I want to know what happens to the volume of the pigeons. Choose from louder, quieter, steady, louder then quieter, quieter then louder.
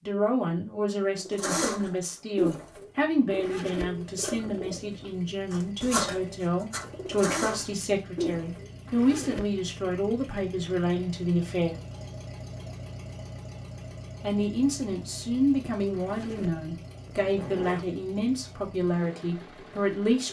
quieter then louder.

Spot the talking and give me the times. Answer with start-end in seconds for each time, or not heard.
0.1-11.8, 14.2-20.2.